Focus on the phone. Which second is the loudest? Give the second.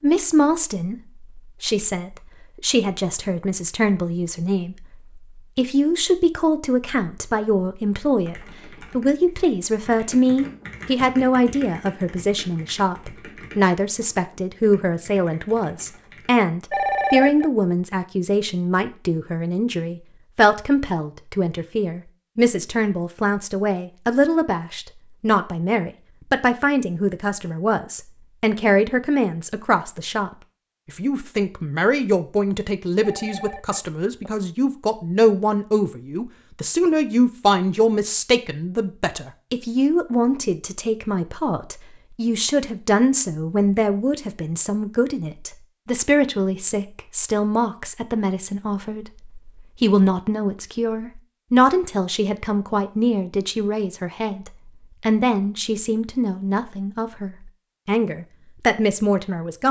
17 s.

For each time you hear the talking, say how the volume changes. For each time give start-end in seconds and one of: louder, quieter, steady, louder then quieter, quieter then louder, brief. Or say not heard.
0.0-30.3 steady
30.9-59.6 steady.